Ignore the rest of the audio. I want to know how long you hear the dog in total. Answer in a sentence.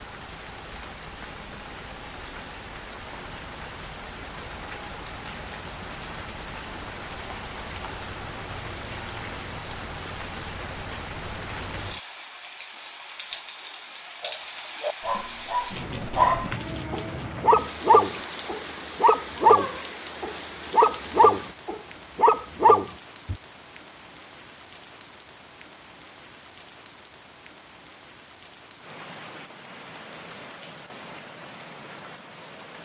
The dog can be heard for 9 seconds in total.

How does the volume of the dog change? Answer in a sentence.
The loudness of the dog goes up.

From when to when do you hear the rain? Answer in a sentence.
The rain can be heard from 0.0 to 32.7 s.